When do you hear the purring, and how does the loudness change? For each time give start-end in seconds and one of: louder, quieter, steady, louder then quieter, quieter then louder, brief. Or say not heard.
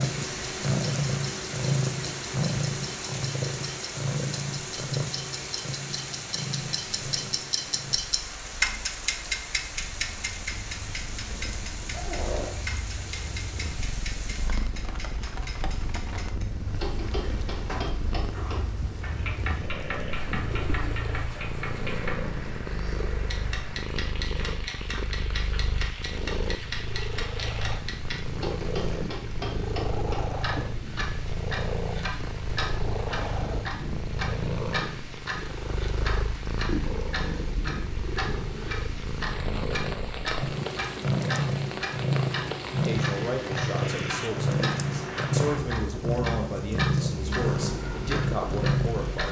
0.0-49.2 quieter then louder.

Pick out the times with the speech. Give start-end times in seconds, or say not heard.
42.7-49.2.